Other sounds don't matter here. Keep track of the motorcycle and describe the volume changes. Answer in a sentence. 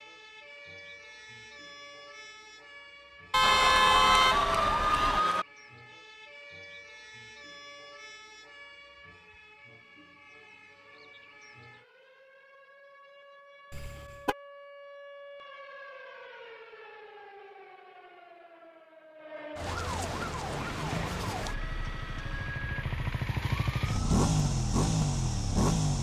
The loudness of the motorcycle goes up.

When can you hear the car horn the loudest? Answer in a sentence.
The volume of the car horn peaks at 4 seconds.